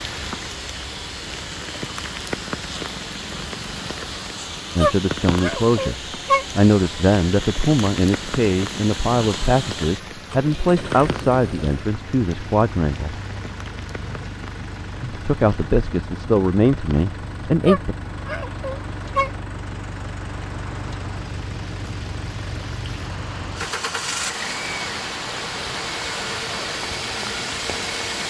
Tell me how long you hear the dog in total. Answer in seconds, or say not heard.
3 s.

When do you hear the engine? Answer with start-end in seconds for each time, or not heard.
0.0-28.2.